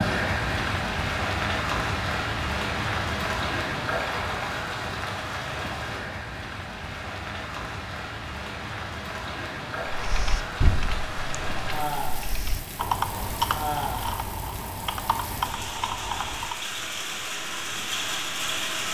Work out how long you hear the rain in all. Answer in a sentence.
The rain can be heard for 19 seconds in total.